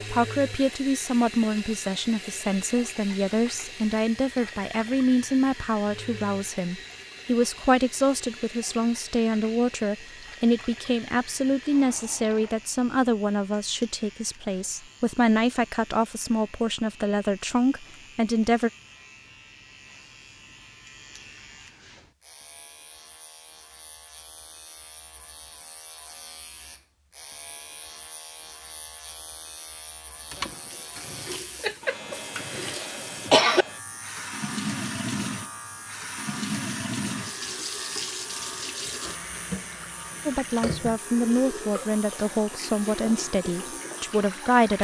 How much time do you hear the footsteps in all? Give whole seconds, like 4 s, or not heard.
not heard.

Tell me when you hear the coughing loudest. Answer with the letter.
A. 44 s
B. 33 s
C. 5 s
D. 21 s
B.